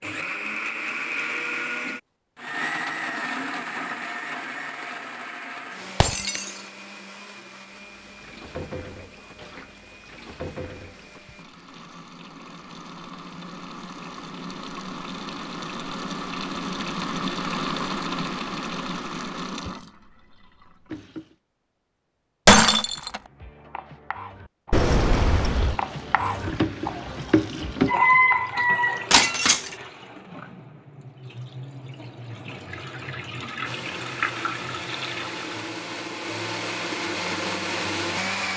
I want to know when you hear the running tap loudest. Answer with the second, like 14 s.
28 s.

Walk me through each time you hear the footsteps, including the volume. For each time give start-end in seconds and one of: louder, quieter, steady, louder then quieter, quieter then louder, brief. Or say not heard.
not heard.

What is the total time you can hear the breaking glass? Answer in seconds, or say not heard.
2 s.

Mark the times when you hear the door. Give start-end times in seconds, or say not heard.
24.7-25.8.